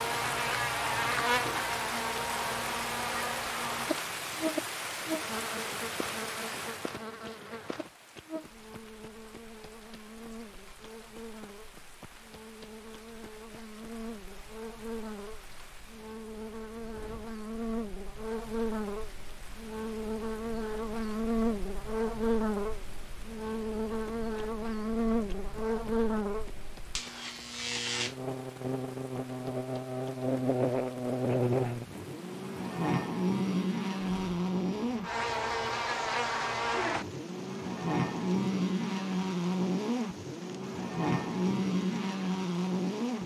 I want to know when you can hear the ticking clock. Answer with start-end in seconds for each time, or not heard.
not heard.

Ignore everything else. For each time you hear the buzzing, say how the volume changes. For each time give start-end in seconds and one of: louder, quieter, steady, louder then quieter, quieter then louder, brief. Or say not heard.
0.0-43.2 quieter then louder.